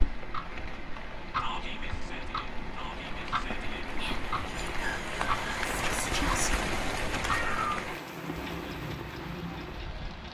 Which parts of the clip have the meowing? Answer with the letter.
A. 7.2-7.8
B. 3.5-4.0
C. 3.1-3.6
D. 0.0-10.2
A.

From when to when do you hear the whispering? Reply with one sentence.
You can hear the whispering from 1.4 to 6.5 s.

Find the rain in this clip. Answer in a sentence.
The rain can be heard from 0.0 to 10.2 s.